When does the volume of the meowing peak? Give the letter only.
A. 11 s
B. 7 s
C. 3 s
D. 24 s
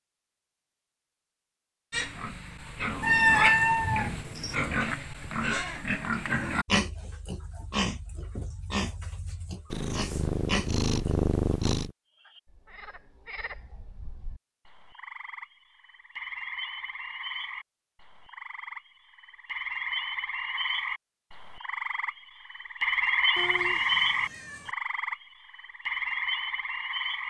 C.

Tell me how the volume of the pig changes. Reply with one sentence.
The loudness of the pig goes down.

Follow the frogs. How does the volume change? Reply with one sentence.
The loudness of the frogs goes up.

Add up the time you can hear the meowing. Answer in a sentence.
You can hear the meowing for 5 seconds altogether.